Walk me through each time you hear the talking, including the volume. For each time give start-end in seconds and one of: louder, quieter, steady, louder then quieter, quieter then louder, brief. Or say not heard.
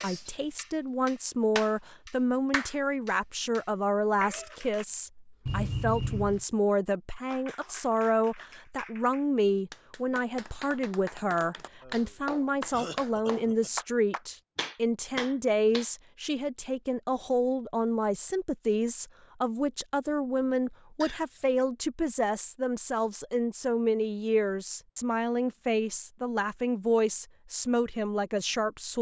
0.0-28.9 steady.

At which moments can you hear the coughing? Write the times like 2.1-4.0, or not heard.
5.5-6.5, 11.8-13.7, 21.0-21.6.